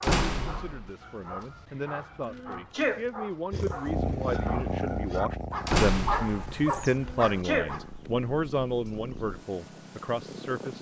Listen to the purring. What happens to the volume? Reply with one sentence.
The loudness of the purring goes down.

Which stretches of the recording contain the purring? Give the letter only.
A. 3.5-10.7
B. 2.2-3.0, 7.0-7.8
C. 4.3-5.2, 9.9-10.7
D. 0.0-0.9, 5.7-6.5
A.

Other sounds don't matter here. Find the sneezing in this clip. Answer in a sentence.
You can hear the sneezing from 2.2 to 3.0 s and from 7.0 to 7.8 s.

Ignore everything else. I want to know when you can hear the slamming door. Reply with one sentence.
You can hear the slamming door from 0.0 to 0.9 s and from 5.7 to 6.5 s.